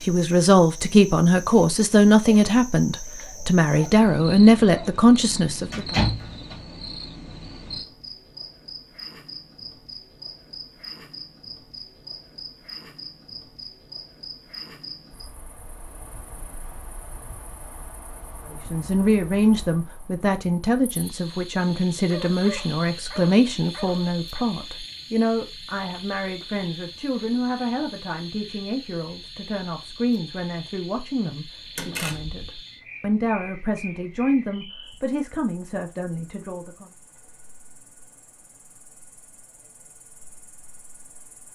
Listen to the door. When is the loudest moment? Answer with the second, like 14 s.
6 s.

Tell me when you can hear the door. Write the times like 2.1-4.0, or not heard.
5.7-6.6, 31.8-32.5.